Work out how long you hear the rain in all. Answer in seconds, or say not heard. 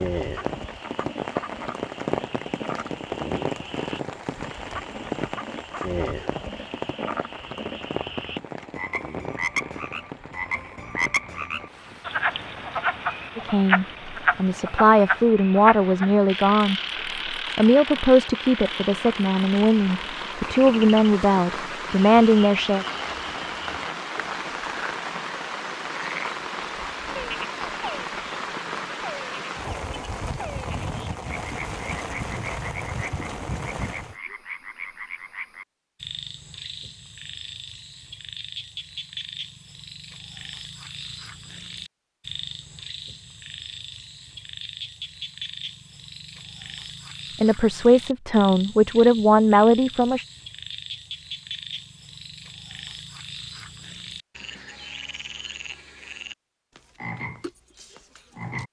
34 s.